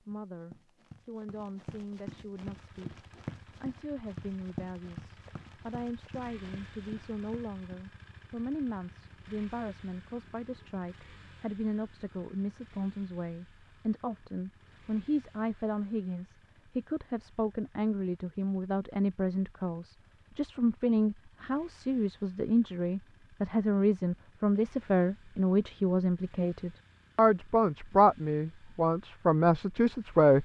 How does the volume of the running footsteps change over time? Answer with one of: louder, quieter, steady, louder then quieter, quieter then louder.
louder then quieter.